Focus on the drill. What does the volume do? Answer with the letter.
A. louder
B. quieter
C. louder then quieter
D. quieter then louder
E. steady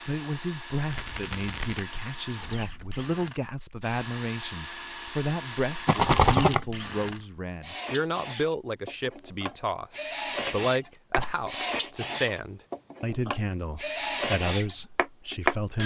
A.